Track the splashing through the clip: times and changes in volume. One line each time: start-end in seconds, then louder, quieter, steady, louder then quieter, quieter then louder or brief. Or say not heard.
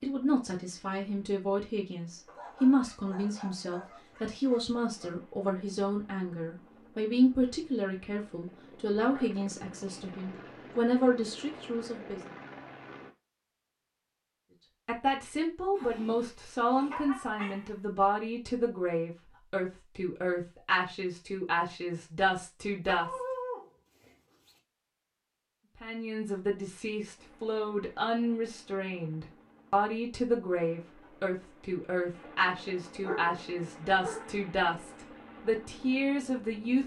not heard.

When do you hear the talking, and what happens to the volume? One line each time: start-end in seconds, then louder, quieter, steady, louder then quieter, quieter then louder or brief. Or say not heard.
0.0-12.3 steady
14.8-23.2 steady
25.8-36.8 steady.